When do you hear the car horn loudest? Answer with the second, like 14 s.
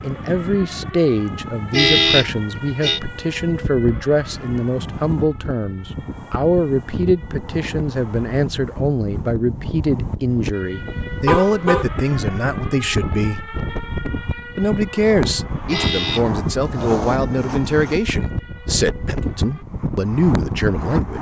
2 s.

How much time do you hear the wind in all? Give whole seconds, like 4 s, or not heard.
21 s.